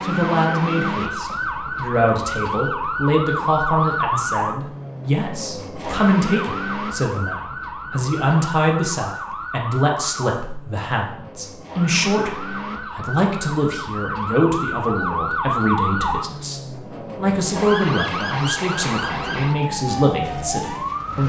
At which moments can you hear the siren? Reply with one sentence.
The siren can be heard from 0.0 to 21.2 s.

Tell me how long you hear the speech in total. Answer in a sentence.
You can hear the speech for 21 seconds altogether.